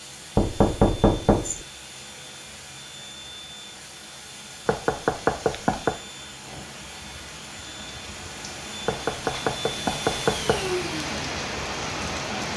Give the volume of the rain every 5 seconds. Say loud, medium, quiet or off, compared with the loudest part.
quiet, medium, loud.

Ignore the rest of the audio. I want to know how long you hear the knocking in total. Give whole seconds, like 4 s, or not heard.
4 s.